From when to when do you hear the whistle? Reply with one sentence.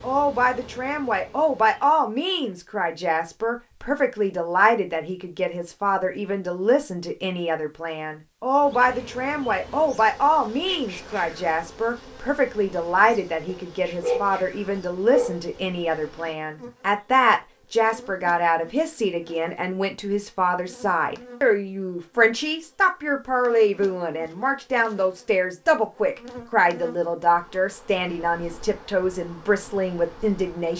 You can't hear the whistle here.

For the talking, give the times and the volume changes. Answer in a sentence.
The talking can be heard from 0.0 to 30.7 s, at a steady volume.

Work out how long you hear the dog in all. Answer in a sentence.
You can hear the dog for 2 seconds altogether.